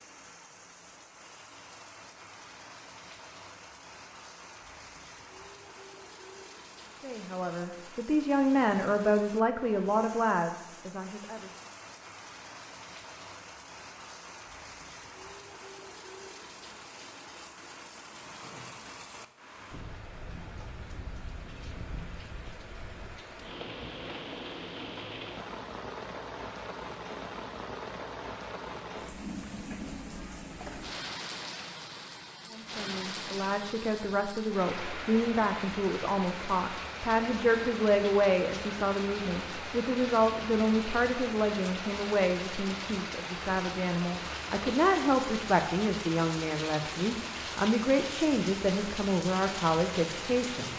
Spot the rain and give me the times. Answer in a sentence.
The rain can be heard from 0.0 to 50.7 s.